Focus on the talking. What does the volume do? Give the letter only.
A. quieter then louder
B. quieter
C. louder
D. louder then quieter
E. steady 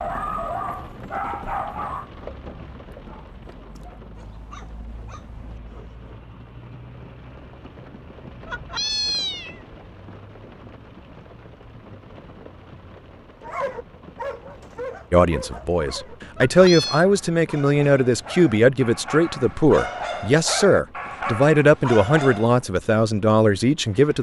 E.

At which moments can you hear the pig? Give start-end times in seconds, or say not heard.
not heard.